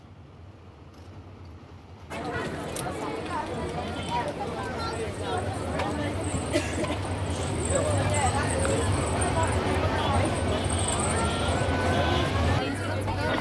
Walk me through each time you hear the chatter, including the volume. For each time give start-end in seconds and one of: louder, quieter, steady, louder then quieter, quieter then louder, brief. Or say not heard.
2.1-13.3 steady.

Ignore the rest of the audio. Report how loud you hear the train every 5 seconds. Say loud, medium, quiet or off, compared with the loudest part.
quiet, loud, loud.